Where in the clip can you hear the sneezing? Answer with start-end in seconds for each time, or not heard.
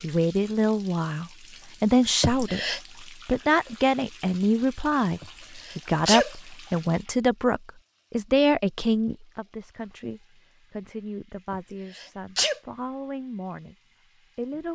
2.2-2.8, 5.2-6.3, 11.5-12.6.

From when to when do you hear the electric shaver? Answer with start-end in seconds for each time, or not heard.
not heard.